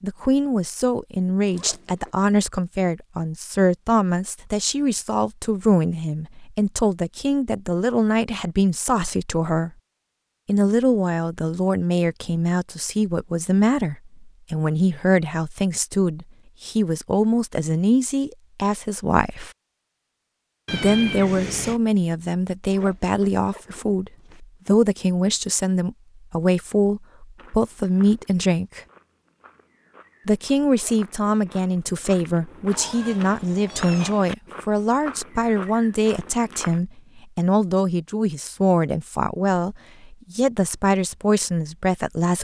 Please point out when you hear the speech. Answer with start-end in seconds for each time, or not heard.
0.0-9.7, 10.4-19.5, 20.7-28.8, 30.2-42.3.